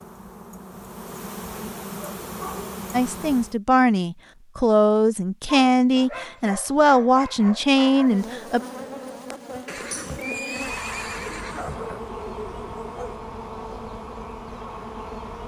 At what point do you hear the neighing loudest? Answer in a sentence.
The loudest moment of the neighing is at 10 seconds.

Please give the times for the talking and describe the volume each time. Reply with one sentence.
You can hear the talking from 2.9 to 8.6 s, at a steady volume.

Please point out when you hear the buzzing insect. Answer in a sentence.
You can hear the buzzing insect from 0.0 to 3.6 s and from 8.0 to 15.4 s.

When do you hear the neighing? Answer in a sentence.
The neighing can be heard from 9.7 to 12.0 s.